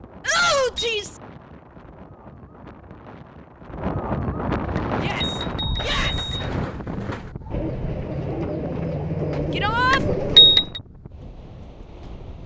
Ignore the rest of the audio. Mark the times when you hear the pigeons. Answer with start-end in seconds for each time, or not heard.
4.5-10.7.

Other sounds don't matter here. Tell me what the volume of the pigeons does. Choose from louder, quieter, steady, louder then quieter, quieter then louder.
louder.